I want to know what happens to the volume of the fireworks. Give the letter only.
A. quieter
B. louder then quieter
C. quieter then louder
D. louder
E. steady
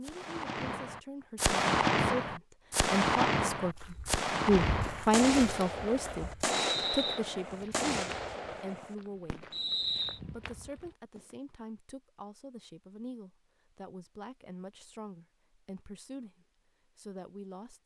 A.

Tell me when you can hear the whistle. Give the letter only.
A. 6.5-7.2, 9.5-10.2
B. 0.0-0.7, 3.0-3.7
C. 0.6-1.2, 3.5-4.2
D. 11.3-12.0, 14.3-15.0
A.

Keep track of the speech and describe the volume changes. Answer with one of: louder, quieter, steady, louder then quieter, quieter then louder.
louder then quieter.